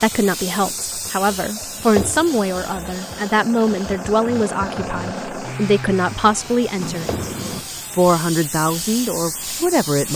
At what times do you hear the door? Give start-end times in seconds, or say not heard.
6.8-7.7.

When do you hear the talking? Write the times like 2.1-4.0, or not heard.
0.0-7.2, 7.9-10.1.